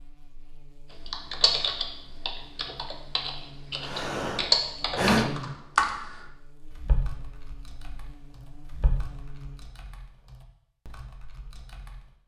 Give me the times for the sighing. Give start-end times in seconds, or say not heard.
3.8-5.5.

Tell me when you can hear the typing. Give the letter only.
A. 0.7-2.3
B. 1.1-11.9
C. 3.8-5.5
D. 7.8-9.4
B.